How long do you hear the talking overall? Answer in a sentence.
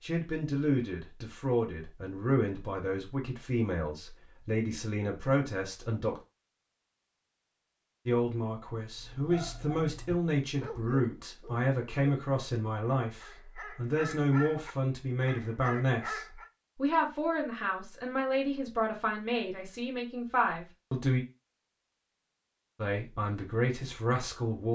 You can hear the talking for 21 seconds altogether.